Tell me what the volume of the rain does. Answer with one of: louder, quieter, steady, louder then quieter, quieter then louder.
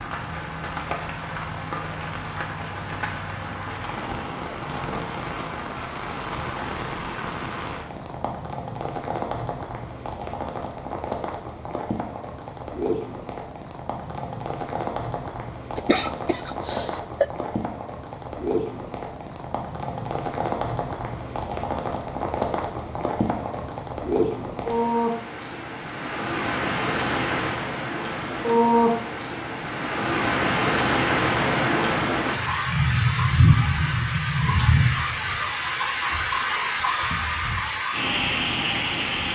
louder.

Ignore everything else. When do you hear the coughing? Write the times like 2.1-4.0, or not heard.
15.8-17.2.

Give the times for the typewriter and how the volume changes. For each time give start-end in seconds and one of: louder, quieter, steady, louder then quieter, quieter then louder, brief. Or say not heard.
not heard.